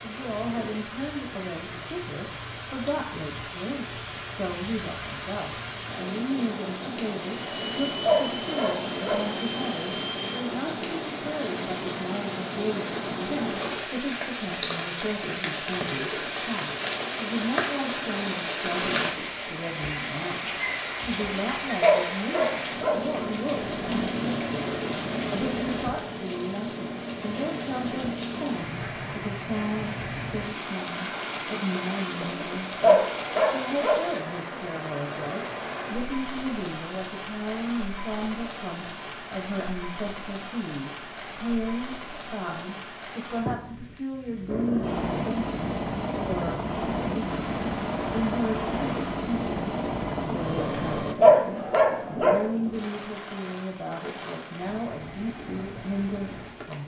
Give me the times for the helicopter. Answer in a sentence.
You can hear the helicopter from 7.2 to 10.4 s and from 44.5 to 51.1 s.